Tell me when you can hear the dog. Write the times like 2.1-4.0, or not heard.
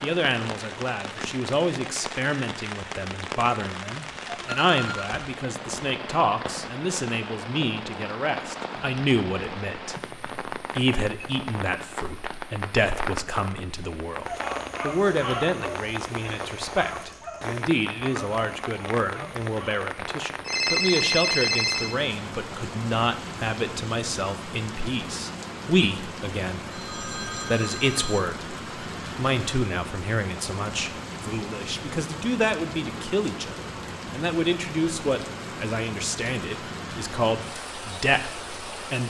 14.2-19.9.